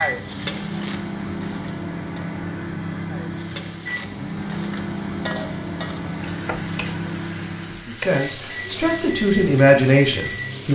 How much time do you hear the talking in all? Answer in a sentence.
You can hear the talking for 3 seconds altogether.